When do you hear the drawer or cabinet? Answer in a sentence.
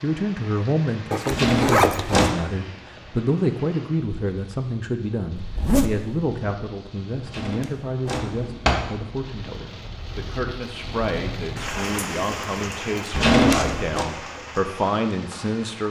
The drawer or cabinet can be heard from 1.3 to 2.4 s, from 7.2 to 8.9 s and from 13.1 to 14.1 s.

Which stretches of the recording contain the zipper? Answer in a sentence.
You can hear the zipper from 1.1 to 2.3 s, from 5.3 to 6.2 s and from 13.3 to 13.8 s.